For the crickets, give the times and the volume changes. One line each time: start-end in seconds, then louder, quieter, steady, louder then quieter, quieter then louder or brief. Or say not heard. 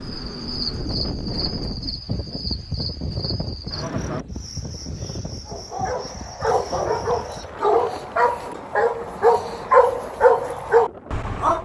0.0-7.5 quieter.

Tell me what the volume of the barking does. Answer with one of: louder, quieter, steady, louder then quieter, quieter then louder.
louder.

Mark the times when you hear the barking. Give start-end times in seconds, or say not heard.
5.5-11.6.